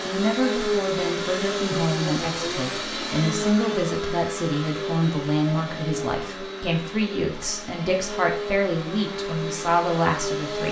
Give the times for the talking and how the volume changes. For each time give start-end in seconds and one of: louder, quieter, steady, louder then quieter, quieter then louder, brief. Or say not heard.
0.1-10.6 steady.